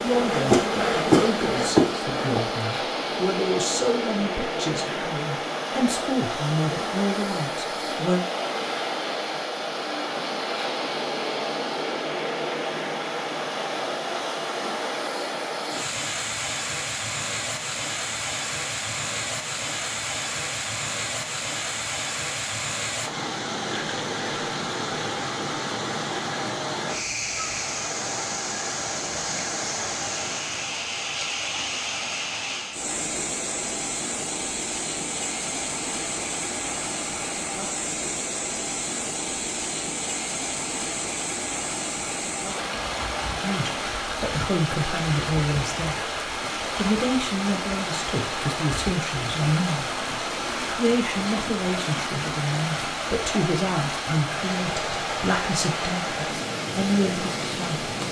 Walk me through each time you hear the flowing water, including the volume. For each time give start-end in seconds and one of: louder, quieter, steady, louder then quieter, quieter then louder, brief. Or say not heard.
0.0-58.0 steady.